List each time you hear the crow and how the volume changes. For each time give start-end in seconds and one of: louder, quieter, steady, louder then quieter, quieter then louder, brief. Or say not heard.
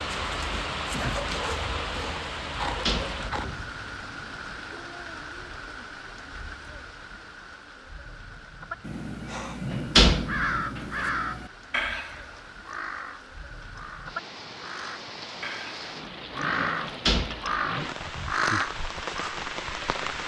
8.8-19.4 quieter then louder.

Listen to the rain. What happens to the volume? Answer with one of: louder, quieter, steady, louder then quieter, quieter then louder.
quieter then louder.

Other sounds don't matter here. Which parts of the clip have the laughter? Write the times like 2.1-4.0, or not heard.
not heard.